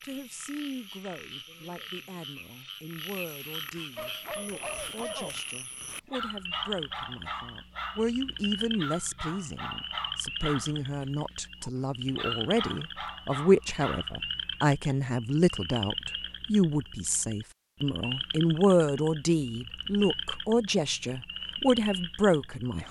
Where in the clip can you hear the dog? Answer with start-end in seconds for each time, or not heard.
4.0-8.1, 8.8-14.2.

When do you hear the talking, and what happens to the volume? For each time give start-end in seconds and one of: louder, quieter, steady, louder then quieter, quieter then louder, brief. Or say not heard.
0.0-22.8 louder.